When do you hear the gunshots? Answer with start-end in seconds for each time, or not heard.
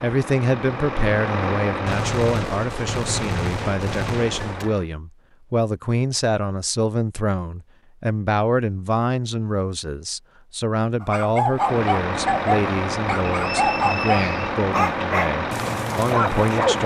1.9-4.7.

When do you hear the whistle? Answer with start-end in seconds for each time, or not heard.
13.4-14.6.